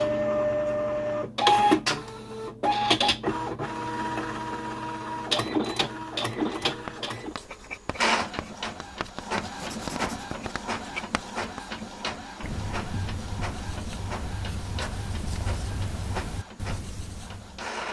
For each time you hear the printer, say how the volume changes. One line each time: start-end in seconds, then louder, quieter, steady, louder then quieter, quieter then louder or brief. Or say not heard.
0.0-17.8 quieter.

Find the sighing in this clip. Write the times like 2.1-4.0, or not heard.
not heard.